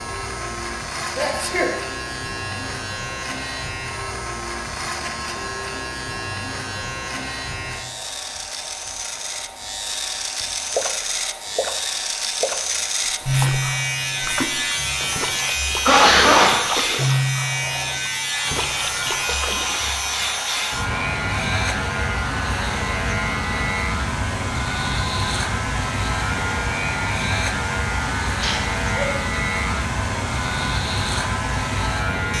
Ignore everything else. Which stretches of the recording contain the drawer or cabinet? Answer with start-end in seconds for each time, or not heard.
not heard.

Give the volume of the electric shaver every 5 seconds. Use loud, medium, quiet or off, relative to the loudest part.
medium, medium, loud, loud, loud, loud, loud.